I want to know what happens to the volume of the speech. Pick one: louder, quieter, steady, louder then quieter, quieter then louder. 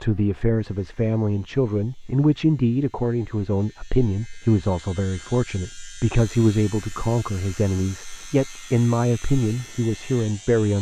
steady.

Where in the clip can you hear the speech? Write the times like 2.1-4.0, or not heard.
0.0-10.7.